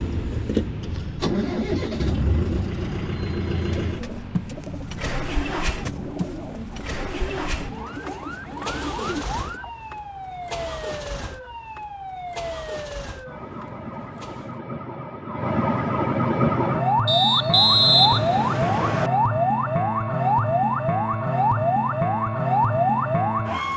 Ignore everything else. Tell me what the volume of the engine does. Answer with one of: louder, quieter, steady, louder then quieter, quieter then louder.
quieter.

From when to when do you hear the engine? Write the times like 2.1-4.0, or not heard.
0.0-14.6.